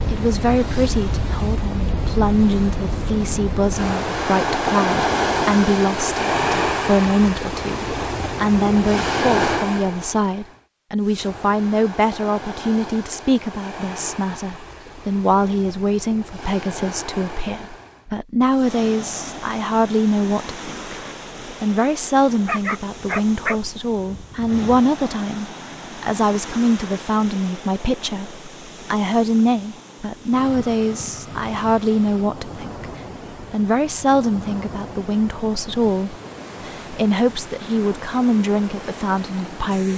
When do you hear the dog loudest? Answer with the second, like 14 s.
23 s.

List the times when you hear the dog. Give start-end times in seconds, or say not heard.
22.4-24.8.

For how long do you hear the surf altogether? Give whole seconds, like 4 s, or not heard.
40 s.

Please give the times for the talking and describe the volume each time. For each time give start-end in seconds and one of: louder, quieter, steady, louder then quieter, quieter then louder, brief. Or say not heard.
0.1-39.9 steady.